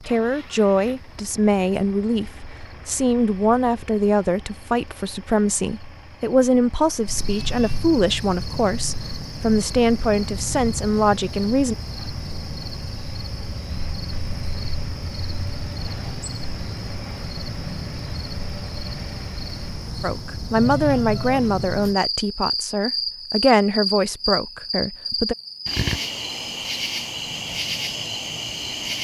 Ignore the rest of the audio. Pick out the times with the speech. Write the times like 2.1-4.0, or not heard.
0.1-11.8, 20.0-25.4.